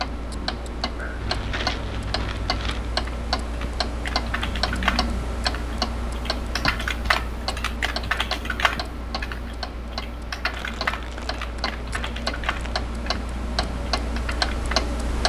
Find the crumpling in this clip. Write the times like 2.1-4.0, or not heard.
1.2-3.0, 10.5-12.9.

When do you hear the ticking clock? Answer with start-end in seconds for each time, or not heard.
0.0-15.2.